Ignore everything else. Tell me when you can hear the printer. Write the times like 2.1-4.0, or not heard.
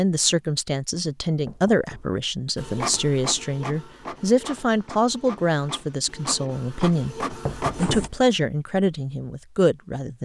2.5-8.1.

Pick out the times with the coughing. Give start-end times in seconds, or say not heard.
not heard.